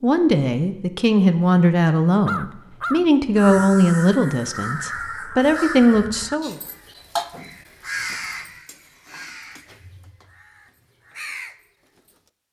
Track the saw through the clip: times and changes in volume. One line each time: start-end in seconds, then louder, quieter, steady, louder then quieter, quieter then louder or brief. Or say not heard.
not heard.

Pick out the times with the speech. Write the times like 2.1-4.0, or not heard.
0.0-6.5.